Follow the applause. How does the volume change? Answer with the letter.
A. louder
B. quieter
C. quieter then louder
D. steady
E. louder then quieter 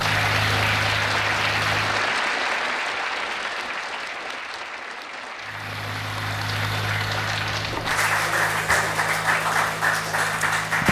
C.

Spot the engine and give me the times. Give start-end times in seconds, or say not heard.
0.0-2.0, 5.3-10.8.